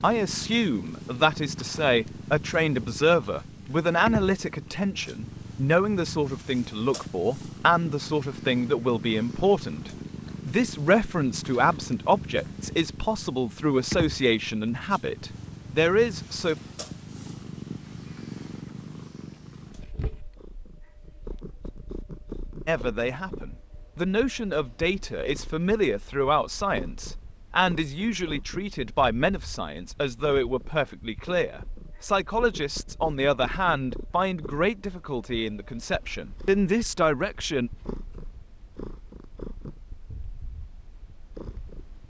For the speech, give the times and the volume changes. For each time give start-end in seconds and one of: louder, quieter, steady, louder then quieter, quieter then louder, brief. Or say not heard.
0.0-16.6 steady
22.6-37.7 steady.